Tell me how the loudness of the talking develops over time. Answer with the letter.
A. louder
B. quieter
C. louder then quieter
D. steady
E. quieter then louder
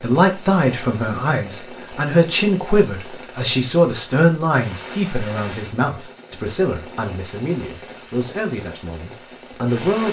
B.